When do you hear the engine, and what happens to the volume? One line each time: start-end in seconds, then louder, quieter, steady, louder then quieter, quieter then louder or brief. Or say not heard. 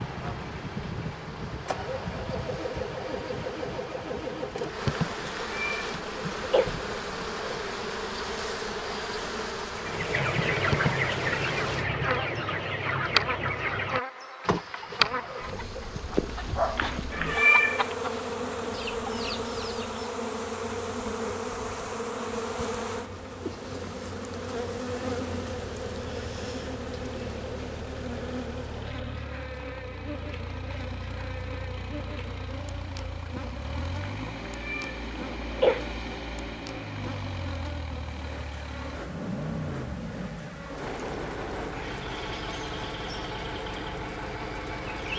0.0-7.7 quieter
14.8-45.1 louder.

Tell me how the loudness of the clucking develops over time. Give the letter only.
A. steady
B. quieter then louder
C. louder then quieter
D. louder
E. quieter
E.